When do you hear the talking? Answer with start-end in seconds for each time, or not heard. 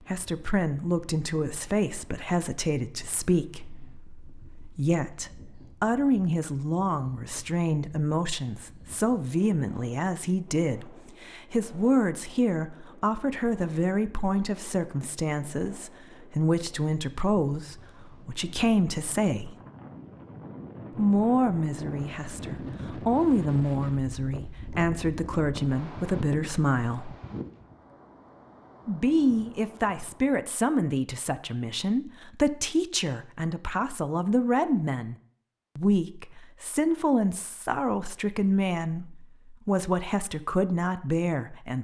0.0-19.6, 20.9-27.1, 28.9-35.1, 35.8-41.7.